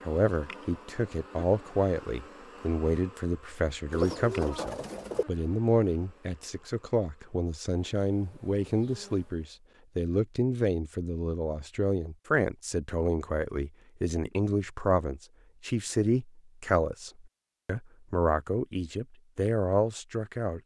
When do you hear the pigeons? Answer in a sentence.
You can hear the pigeons from 3.9 to 5.2 s.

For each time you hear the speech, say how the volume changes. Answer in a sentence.
You can hear the speech from 0.0 to 20.6 s, at a steady volume.